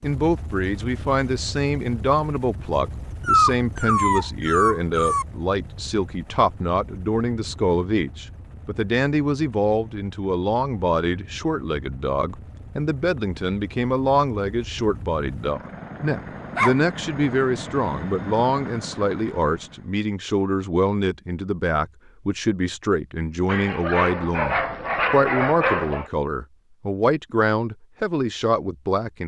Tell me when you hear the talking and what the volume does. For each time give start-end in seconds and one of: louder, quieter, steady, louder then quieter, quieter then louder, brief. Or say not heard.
0.0-29.2 steady.